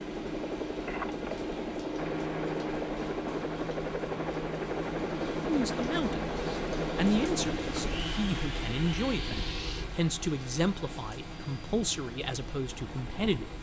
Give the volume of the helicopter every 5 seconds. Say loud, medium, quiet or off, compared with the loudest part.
loud, loud, quiet.